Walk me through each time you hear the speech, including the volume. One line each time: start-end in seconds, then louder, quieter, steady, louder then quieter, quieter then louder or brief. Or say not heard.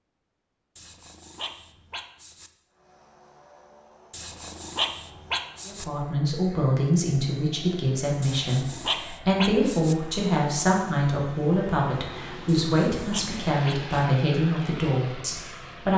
5.7-15.9 steady.